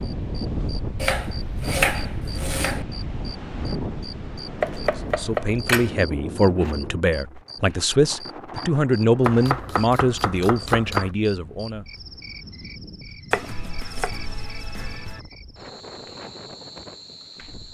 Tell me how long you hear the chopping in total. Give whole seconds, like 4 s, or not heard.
7 s.